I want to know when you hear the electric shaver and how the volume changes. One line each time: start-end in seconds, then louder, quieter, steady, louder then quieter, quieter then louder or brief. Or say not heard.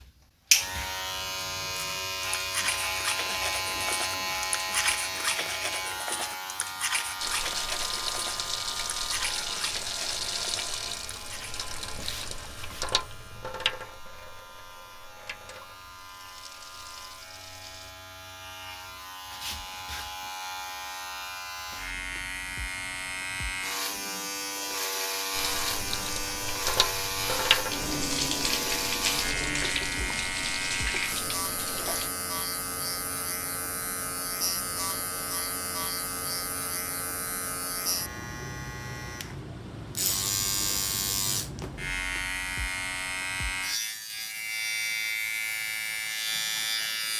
0.0-47.1 quieter then louder.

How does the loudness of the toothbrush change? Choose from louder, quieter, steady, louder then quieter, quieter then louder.
quieter.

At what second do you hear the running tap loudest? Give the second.
28 s.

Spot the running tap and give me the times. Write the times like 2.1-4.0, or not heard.
7.2-17.9, 25.3-32.1.